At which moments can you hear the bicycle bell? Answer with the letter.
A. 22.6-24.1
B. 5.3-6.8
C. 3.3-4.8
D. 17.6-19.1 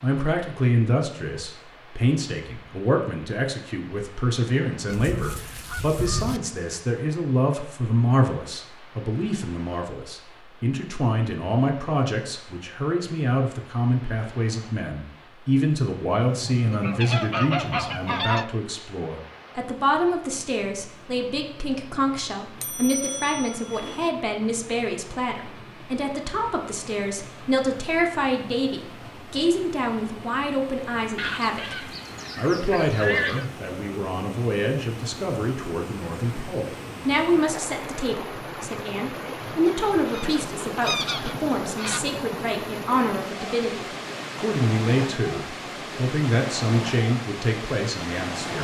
A.